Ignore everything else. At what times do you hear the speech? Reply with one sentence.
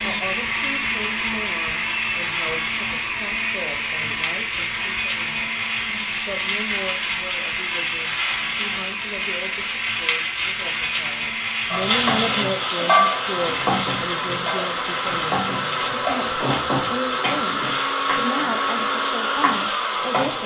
The speech can be heard from 0.0 to 20.4 s.